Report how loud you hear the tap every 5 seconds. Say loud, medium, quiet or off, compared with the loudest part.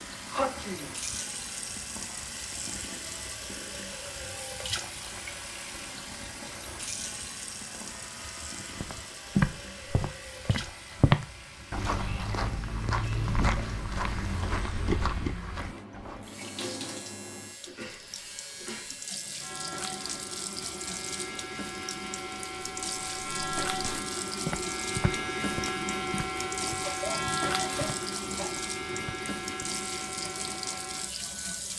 loud, loud, medium, loud, loud, loud, loud.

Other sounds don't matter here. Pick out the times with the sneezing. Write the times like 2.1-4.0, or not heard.
0.3-0.9, 17.6-18.9, 26.9-28.9.